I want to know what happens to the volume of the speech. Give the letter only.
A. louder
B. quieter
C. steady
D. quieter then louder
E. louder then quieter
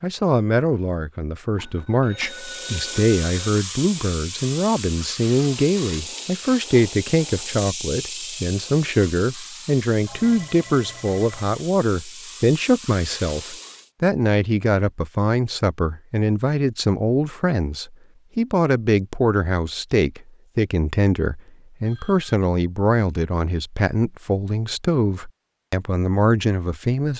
C.